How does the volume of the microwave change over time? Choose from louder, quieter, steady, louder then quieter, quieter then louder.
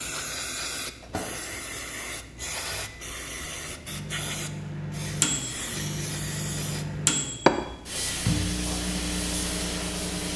louder.